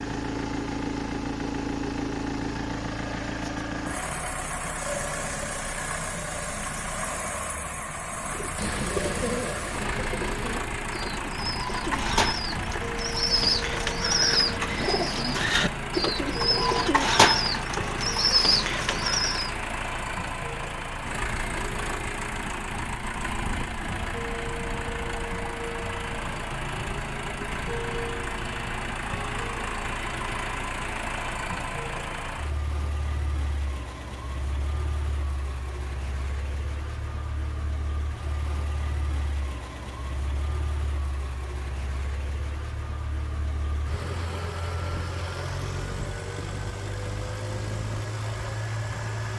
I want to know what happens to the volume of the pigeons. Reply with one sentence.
The volume of the pigeons goes up.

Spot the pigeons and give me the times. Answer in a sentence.
You can hear the pigeons from 8.2 to 19.5 s.